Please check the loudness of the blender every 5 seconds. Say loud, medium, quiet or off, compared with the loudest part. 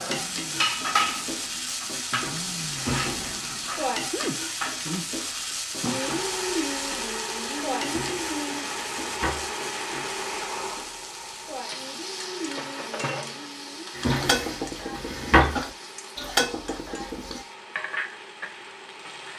medium, loud, medium, quiet.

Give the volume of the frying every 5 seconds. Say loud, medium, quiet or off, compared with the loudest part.
loud, loud, medium, medium.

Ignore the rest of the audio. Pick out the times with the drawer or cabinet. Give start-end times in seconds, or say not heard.
2.8-3.5, 7.8-9.5, 13.9-15.6.